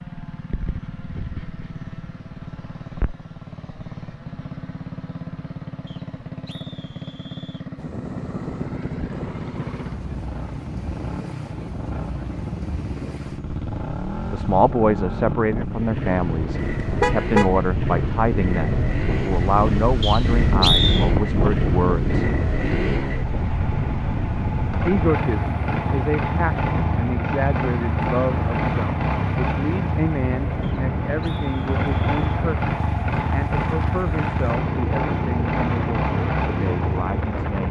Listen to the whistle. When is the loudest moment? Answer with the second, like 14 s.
21 s.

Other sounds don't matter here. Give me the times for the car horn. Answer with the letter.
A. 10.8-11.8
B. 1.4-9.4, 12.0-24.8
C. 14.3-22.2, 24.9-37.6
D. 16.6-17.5
D.